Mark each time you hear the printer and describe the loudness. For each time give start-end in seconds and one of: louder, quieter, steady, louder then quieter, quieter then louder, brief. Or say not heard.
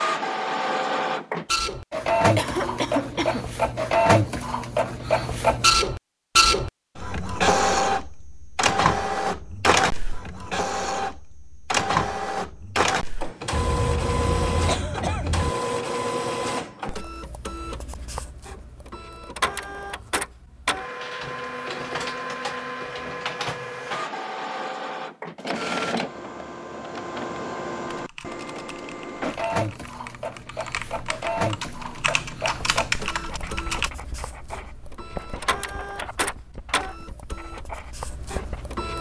0.0-38.9 quieter.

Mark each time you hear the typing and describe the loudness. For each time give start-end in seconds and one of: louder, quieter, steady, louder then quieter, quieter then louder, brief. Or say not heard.
27.9-33.9 louder.